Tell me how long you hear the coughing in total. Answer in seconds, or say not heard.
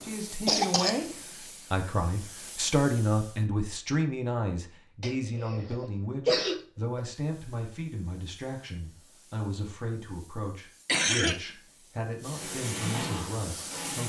3 s.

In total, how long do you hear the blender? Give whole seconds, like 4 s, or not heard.
2 s.